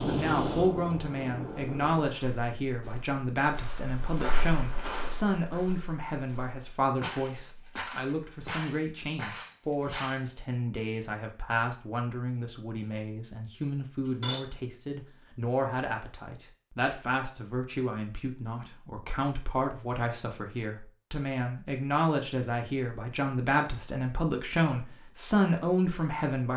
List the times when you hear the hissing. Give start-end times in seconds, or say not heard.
0.0-2.0.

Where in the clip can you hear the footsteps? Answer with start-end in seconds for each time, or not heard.
1.5-10.2.